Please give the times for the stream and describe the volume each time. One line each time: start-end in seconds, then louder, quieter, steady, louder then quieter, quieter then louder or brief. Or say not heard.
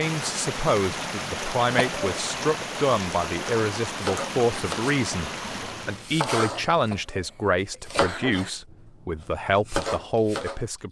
0.0-6.2 steady.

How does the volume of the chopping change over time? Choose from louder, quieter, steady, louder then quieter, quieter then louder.
steady.